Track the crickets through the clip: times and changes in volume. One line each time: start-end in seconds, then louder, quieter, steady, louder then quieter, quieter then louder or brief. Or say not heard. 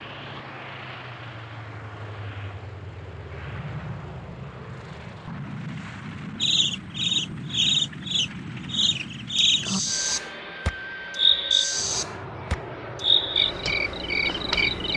6.4-14.9 steady.